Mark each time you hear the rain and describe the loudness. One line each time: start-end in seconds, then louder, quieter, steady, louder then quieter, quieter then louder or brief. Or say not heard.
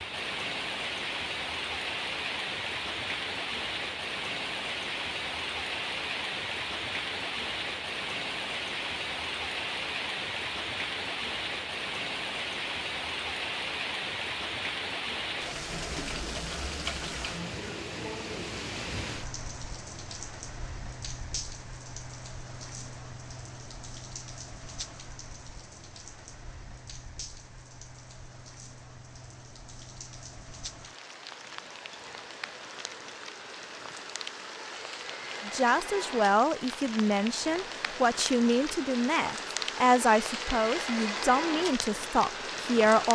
0.0-43.0 quieter then louder.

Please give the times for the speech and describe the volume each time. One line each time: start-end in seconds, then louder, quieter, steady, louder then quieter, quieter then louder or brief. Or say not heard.
35.5-43.0 steady.